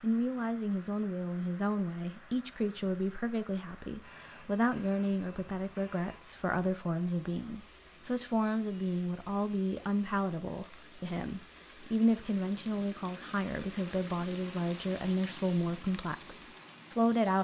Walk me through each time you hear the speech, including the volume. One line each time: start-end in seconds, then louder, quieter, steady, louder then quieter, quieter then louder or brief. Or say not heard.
0.0-17.3 steady.